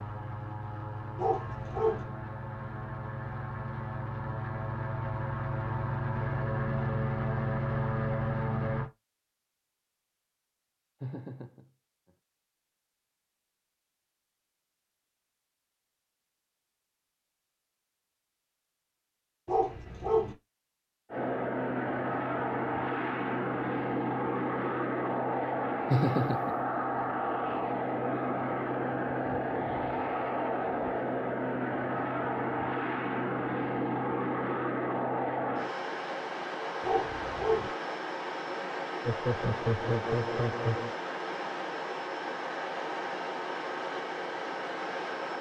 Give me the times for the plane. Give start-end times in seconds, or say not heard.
0.0-8.9, 21.1-45.3.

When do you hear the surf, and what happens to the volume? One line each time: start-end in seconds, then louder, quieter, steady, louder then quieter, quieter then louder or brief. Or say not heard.
not heard.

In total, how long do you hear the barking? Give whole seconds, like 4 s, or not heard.
3 s.